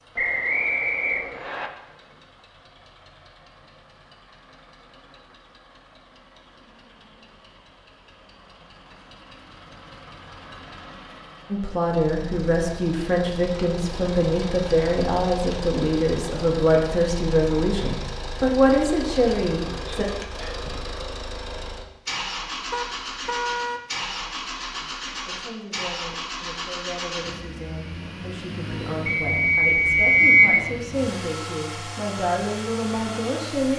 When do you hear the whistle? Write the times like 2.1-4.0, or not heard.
0.1-1.7, 29.1-30.6.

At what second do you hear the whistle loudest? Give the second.
30 s.